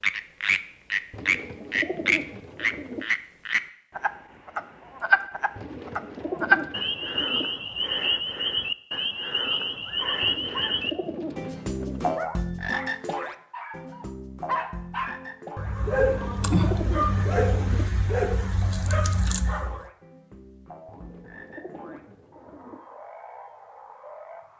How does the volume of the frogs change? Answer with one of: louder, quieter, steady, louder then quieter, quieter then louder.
quieter.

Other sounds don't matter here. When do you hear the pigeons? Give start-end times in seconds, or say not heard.
1.1-3.0, 5.5-7.5, 10.2-12.2, 15.9-17.9, 20.9-22.8.